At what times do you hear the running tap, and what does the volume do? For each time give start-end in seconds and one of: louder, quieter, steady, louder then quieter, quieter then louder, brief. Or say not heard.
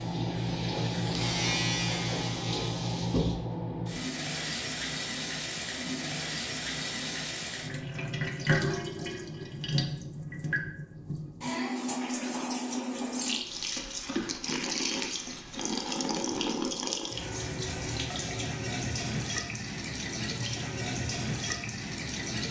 0.0-22.4 steady.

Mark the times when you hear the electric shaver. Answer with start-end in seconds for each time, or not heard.
0.0-3.0.